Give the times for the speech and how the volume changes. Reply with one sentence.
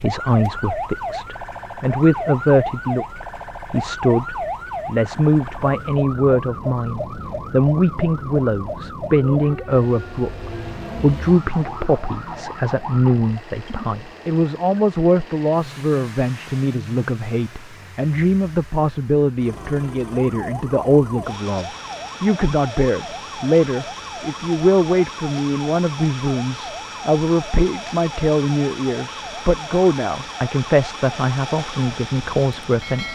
The speech can be heard from 0.0 to 33.1 s, at a steady volume.